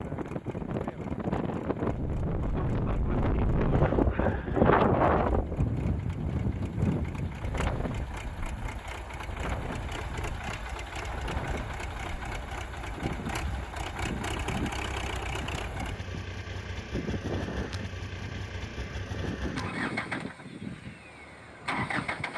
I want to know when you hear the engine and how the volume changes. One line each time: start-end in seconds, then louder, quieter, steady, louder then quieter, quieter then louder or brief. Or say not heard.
0.0-22.3 louder.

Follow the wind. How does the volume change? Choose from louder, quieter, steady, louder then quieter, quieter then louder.
quieter.